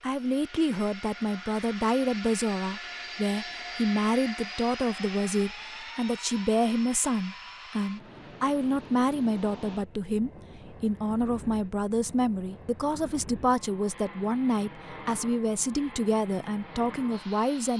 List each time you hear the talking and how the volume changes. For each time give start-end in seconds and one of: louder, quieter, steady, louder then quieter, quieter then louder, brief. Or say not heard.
0.0-17.7 steady.